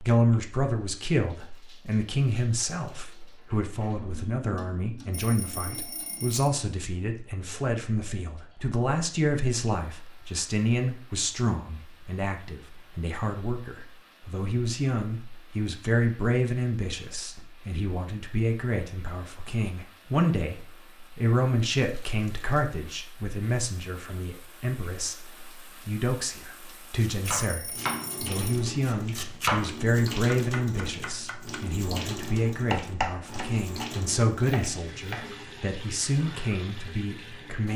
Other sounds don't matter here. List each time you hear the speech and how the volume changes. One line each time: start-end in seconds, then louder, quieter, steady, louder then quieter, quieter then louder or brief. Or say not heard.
0.0-37.7 steady.